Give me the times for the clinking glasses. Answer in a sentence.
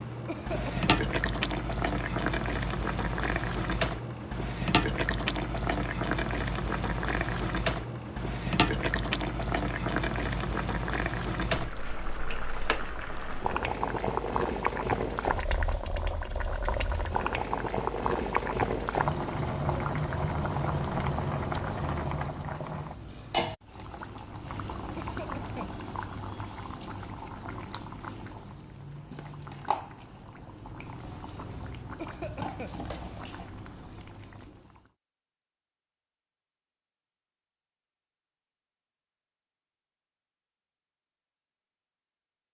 The clinking glasses can't be heard in this clip.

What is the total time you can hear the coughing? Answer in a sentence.
The coughing can be heard for 2 seconds in total.